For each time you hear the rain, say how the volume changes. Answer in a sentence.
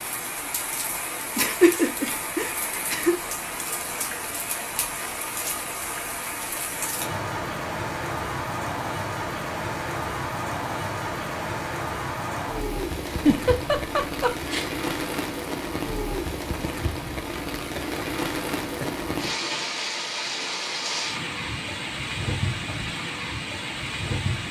The rain can be heard from 0.0 to 24.4 s, at a steady volume.